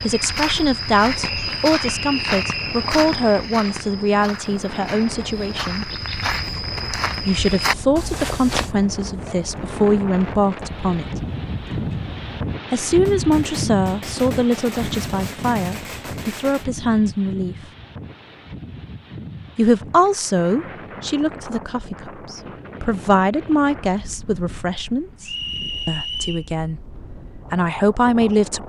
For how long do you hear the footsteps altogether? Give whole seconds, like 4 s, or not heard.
9 s.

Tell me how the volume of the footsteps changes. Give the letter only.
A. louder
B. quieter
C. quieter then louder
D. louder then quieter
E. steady
C.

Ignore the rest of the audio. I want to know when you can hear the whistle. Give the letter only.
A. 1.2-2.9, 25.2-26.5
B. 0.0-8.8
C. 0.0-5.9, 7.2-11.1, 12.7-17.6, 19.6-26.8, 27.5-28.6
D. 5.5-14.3
A.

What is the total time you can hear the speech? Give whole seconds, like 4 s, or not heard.
23 s.